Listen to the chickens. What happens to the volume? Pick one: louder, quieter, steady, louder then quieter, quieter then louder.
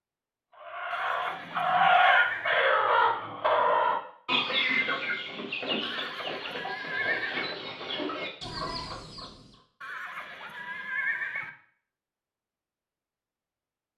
quieter.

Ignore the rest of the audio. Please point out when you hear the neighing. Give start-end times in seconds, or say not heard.
0.9-2.6, 5.8-7.5, 9.8-11.5.